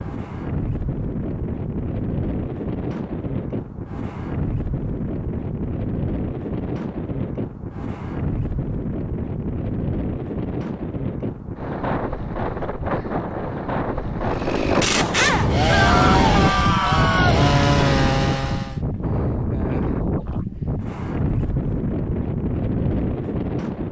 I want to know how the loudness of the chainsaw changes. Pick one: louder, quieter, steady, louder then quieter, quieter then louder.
steady.